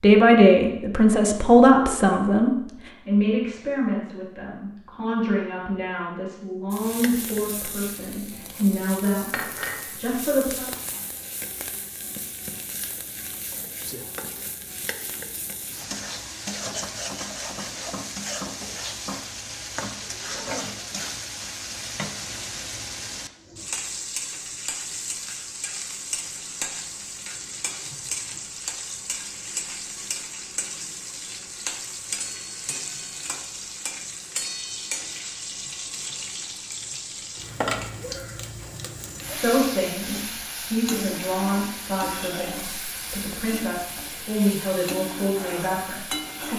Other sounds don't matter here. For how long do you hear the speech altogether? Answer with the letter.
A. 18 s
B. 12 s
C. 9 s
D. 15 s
A.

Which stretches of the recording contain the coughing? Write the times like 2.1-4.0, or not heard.
not heard.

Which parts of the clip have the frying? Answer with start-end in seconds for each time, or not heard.
6.7-46.5.